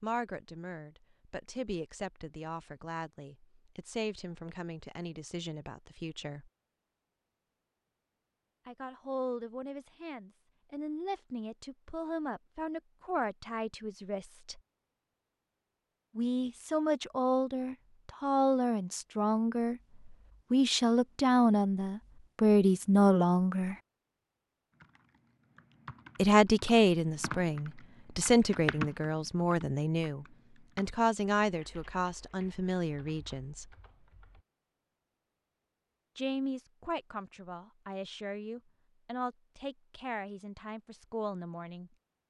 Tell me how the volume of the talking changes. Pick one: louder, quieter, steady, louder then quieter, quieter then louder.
louder then quieter.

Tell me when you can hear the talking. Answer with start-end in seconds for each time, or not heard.
0.0-6.5, 8.7-14.6, 16.1-23.8, 26.1-33.7, 36.1-41.9.